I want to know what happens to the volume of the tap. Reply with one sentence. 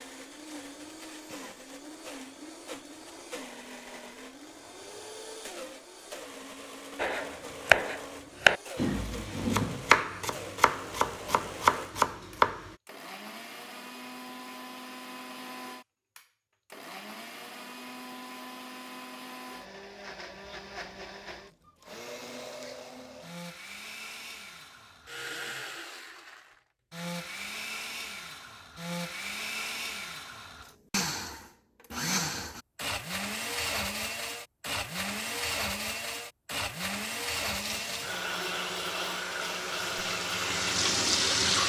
The volume of the tap goes up.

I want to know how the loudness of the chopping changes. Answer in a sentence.
The loudness of the chopping goes down, then up.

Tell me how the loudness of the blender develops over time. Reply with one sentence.
The volume of the blender goes up.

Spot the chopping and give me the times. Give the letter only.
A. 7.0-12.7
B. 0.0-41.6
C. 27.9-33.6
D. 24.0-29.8
A.